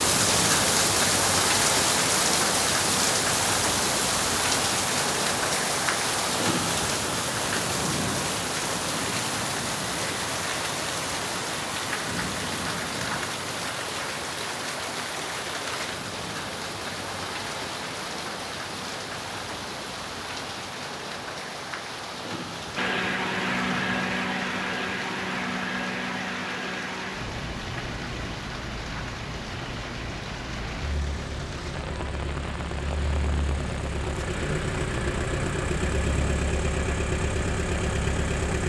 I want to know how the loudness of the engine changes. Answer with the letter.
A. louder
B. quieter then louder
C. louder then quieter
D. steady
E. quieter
B.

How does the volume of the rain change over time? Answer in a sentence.
The volume of the rain goes down.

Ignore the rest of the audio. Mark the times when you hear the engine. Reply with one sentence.
The engine can be heard from 22.8 to 38.6 s.